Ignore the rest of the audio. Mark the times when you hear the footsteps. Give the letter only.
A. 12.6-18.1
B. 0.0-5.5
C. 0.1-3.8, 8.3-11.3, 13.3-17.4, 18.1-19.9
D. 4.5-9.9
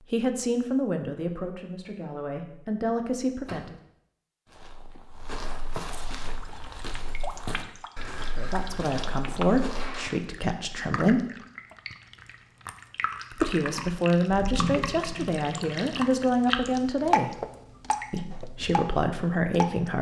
D.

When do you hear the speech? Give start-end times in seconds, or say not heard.
0.1-3.8, 8.3-11.3, 13.3-17.4, 18.1-19.9.